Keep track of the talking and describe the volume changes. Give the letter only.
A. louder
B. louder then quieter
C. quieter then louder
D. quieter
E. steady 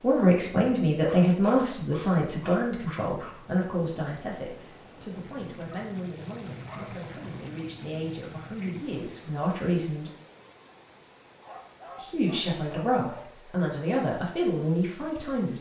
C.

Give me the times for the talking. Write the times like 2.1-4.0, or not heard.
0.0-10.1, 11.9-15.5.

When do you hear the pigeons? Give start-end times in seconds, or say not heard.
not heard.